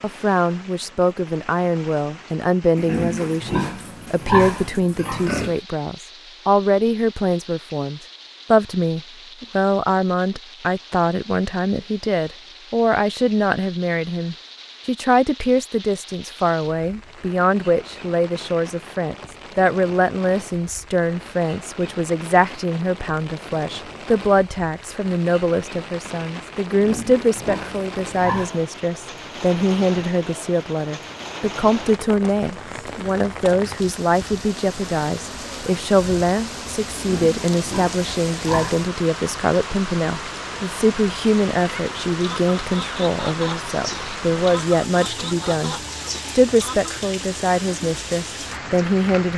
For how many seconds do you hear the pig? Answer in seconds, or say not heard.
7 s.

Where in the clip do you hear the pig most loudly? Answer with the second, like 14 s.
4 s.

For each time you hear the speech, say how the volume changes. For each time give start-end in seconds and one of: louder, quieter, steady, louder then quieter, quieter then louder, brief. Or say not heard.
0.0-49.3 steady.